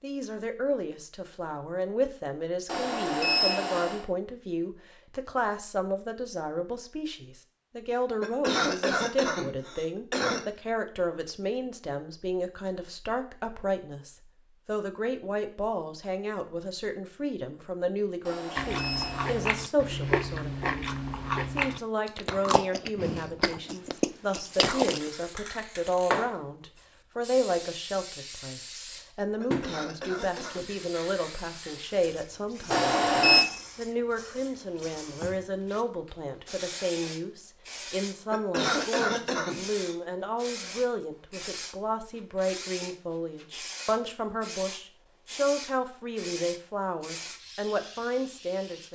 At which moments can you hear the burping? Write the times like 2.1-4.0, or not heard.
not heard.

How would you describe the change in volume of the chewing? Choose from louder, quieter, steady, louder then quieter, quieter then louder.
steady.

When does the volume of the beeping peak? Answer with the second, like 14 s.
33 s.